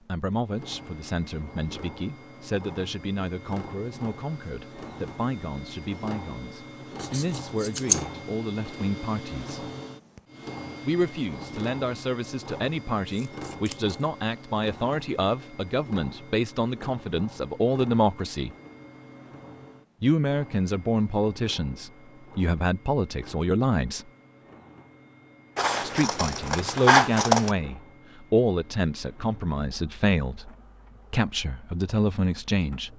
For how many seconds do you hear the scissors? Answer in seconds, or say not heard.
4 s.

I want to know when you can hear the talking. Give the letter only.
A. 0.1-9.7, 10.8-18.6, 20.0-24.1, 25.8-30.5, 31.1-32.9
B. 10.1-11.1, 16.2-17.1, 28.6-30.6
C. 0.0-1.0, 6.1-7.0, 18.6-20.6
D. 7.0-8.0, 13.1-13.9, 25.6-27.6
A.